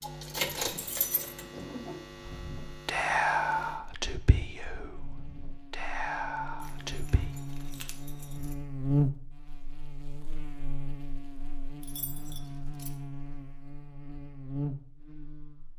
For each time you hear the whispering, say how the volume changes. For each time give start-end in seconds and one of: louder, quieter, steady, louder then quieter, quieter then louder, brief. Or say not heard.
2.2-7.2 quieter then louder.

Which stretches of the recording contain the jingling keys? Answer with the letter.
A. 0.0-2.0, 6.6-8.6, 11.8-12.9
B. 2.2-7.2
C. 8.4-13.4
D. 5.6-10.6
A.